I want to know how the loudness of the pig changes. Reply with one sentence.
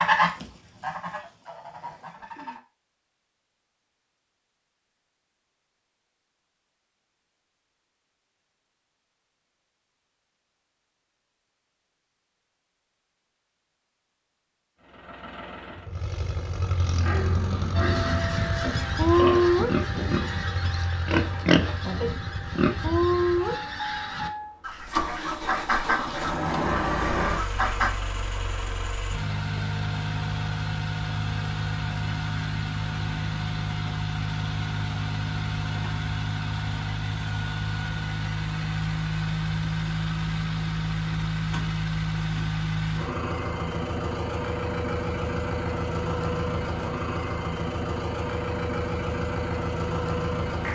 The loudness of the pig goes up.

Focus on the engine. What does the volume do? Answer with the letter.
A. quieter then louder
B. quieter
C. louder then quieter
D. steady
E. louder
D.